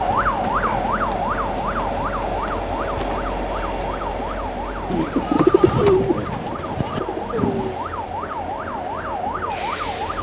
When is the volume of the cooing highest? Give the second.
5 s.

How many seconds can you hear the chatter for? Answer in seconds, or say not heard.
not heard.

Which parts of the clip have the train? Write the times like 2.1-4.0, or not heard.
0.0-10.1.